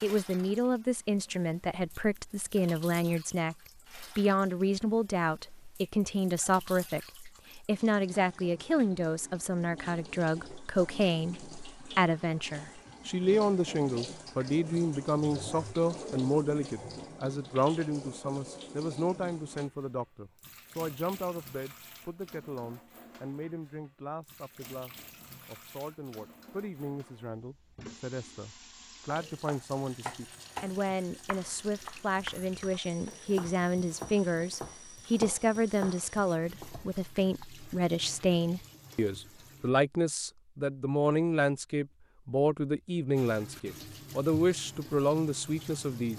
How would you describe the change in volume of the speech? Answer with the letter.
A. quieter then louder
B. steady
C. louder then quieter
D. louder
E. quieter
A.